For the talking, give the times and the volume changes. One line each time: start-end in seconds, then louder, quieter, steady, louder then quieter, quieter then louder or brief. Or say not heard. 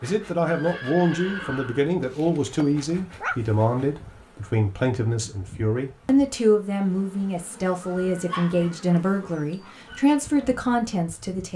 0.0-11.5 steady.